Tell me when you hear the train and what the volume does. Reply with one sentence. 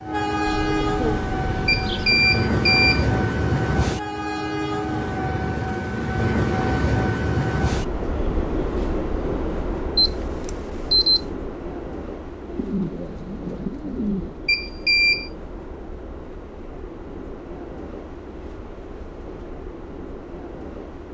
The train can be heard from 0.0 to 21.0 s, getting quieter.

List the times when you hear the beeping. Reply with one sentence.
The beeping can be heard from 1.6 to 3.0 s, from 9.9 to 11.2 s and from 14.4 to 15.3 s.